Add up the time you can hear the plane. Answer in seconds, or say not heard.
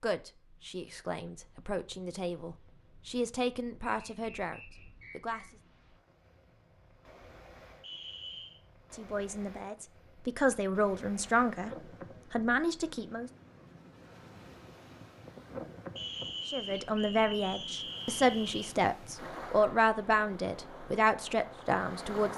not heard.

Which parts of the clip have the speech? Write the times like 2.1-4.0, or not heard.
0.0-5.5, 8.9-13.3, 16.4-22.3.